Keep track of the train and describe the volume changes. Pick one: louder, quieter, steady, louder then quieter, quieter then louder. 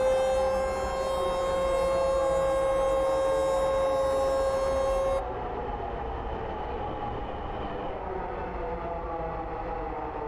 steady.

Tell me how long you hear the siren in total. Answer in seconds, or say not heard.
5 s.